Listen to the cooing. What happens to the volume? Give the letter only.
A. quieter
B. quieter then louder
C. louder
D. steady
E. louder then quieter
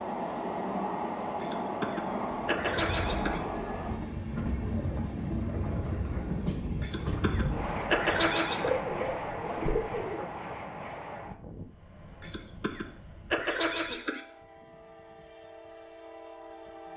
C.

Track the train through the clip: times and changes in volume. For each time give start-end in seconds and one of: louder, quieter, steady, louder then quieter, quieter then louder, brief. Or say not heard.
0.0-16.9 quieter.